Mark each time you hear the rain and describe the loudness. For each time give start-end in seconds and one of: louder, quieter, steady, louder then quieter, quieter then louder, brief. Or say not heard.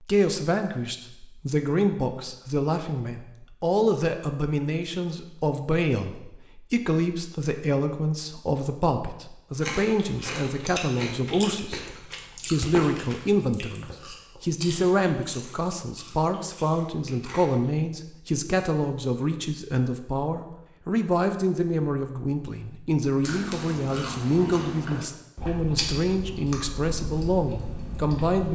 not heard.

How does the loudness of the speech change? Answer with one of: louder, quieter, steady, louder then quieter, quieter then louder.
steady.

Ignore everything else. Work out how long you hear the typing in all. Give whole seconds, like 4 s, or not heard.
not heard.